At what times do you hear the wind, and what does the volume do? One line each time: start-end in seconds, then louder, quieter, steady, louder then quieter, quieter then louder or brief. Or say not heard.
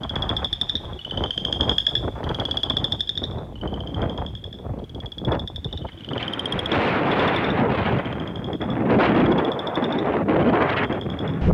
0.0-11.4 louder.